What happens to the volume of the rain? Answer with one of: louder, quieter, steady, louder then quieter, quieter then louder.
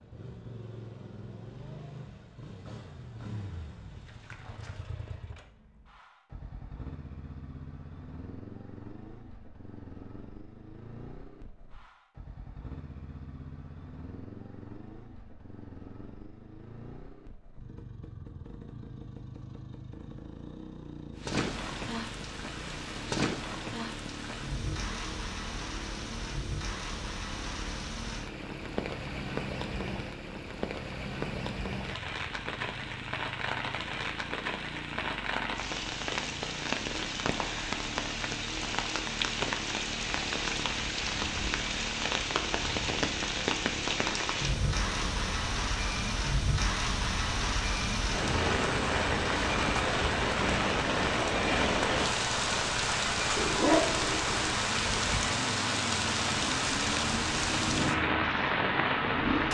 louder.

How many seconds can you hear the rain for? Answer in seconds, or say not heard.
38 s.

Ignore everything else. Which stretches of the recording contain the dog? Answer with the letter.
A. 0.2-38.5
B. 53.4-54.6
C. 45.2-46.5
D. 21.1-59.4
B.